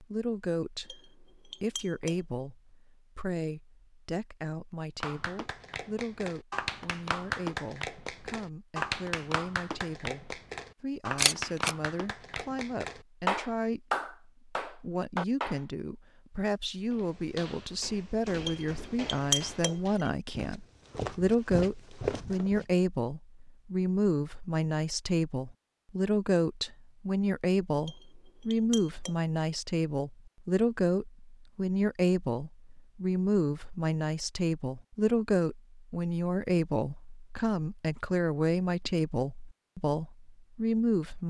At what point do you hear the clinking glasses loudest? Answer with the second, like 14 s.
19 s.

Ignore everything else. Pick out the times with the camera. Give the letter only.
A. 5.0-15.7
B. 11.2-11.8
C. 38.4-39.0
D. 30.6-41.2
B.